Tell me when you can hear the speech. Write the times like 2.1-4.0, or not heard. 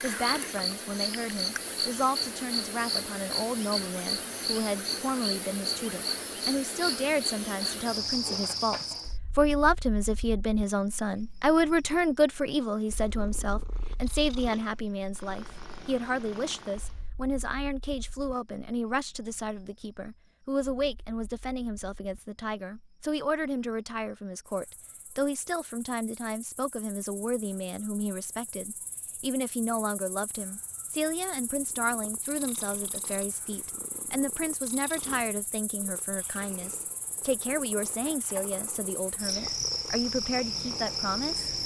0.0-41.5.